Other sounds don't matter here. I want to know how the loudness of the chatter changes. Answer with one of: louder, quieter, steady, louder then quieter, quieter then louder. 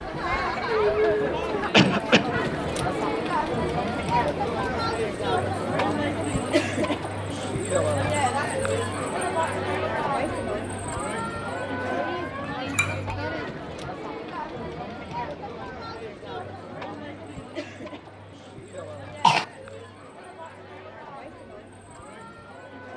quieter.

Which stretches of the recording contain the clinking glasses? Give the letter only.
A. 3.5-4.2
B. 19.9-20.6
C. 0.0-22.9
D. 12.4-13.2
D.